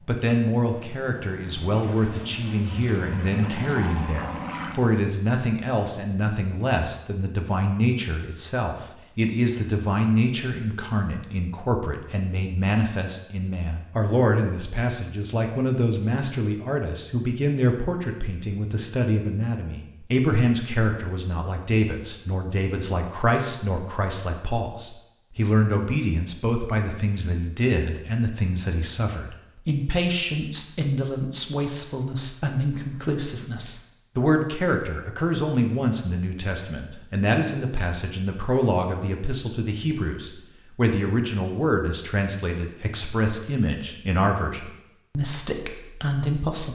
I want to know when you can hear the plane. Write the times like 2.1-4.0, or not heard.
0.0-5.0.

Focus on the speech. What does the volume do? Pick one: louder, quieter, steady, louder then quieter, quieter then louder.
steady.